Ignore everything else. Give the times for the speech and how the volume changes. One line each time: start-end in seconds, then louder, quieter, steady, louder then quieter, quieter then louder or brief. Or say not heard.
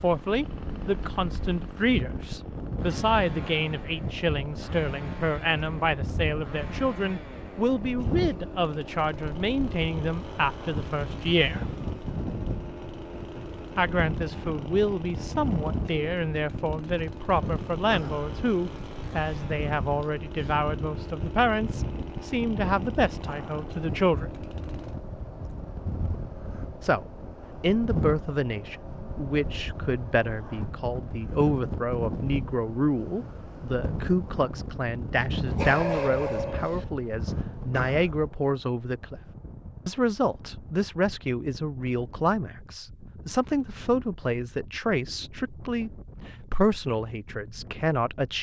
0.0-11.7 steady
13.8-24.4 steady
26.8-39.2 steady
39.9-48.3 steady.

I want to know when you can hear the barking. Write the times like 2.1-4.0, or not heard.
35.5-36.9.